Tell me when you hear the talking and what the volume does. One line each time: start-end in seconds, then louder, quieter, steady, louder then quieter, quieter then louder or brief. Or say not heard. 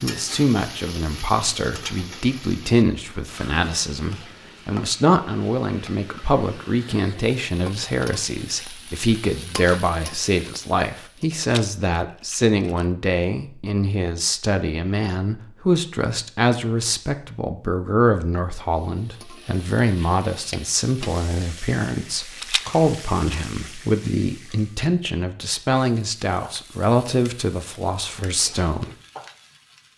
0.0-28.9 steady.